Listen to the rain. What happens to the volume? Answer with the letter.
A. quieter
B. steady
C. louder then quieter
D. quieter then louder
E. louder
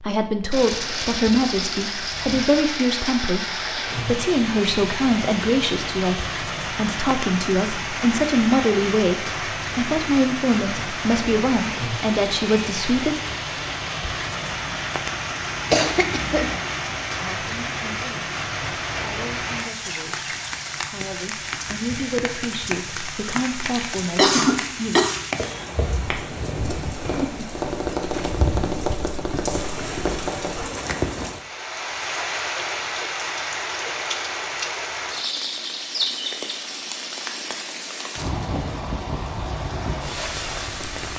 B.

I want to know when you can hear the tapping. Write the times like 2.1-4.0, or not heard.
25.4-30.6.